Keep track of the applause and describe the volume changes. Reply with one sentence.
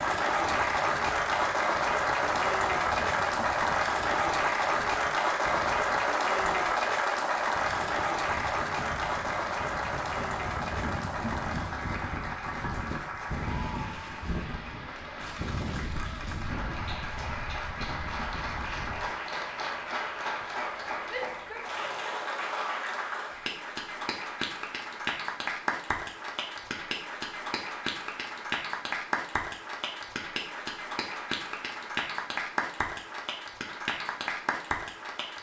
The volume of the applause goes down.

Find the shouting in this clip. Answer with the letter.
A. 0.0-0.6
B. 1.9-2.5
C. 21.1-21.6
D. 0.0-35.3
C.